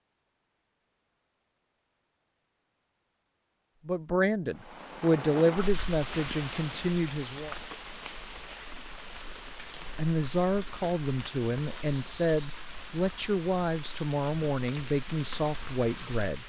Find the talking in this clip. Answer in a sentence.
The talking can be heard from 3.9 to 7.5 s and from 9.9 to 16.4 s.